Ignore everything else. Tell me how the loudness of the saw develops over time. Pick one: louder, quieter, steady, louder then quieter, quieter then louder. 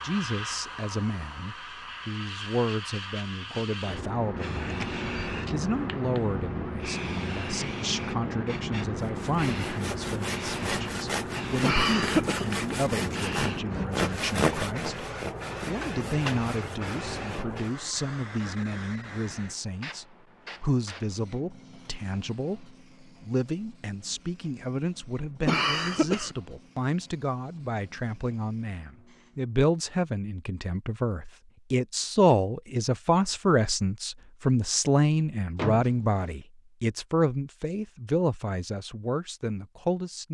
louder then quieter.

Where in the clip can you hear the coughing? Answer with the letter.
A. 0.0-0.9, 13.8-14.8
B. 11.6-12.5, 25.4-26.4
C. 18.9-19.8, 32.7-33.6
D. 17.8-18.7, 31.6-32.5
B.